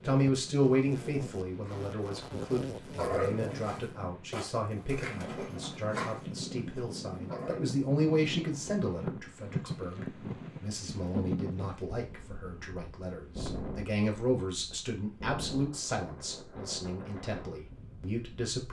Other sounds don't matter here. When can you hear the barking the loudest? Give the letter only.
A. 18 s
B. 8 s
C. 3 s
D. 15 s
C.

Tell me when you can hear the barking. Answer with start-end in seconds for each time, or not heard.
1.6-7.8.